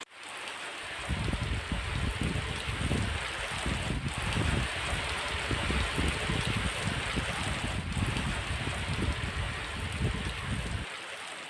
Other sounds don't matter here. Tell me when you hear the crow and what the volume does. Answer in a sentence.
You can hear the crow from 0.8 to 10.8 s, at a steady volume.